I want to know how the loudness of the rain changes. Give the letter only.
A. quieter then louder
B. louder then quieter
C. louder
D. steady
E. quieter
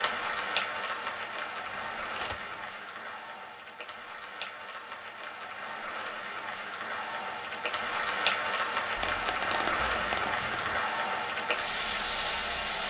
A.